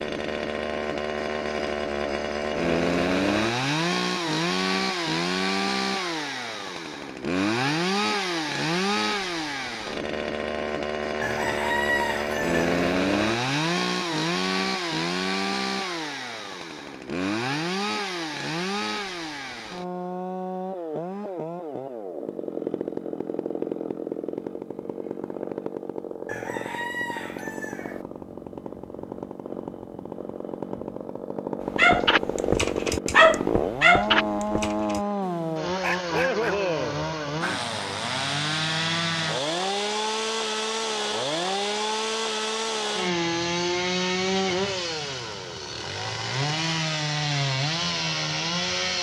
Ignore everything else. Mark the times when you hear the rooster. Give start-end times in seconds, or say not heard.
11.2-12.8, 26.2-28.1.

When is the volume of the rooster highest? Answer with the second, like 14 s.
12 s.